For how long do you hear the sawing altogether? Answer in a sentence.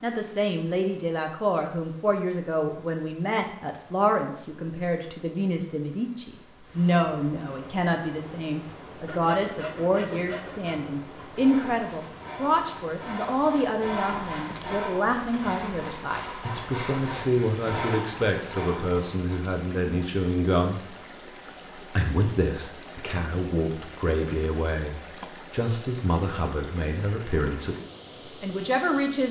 You can hear the sawing for 10 seconds altogether.